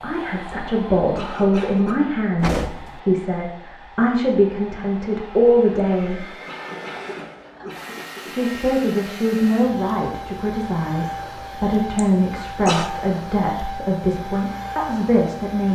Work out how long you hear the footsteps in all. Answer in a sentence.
The footsteps can't be heard in this clip.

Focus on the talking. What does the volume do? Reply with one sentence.
The volume of the talking stays about the same.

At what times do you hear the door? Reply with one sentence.
You can hear the door from 2.4 to 3.0 s.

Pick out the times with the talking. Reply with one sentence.
The talking can be heard from 0.0 to 6.3 s and from 8.3 to 15.7 s.